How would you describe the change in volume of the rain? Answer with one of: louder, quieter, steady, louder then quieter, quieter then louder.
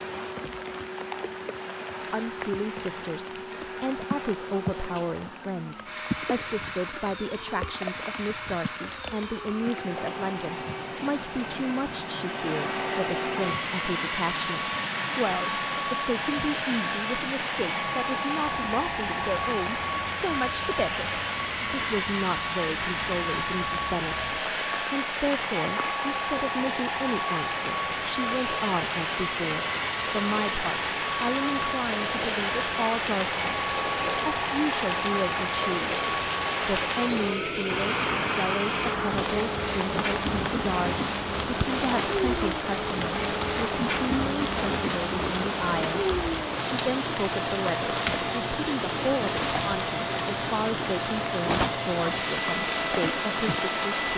louder.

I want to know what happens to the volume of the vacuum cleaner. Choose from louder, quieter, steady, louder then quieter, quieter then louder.
louder.